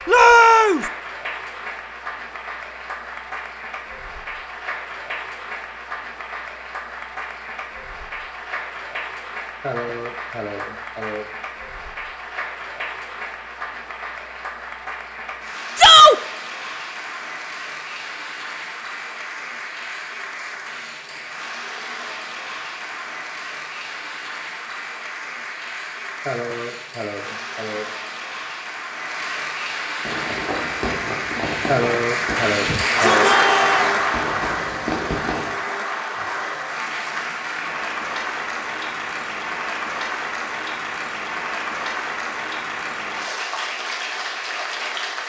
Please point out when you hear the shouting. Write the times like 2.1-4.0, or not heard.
0.1-0.8, 15.8-16.2, 32.6-34.0.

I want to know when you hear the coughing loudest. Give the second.
32 s.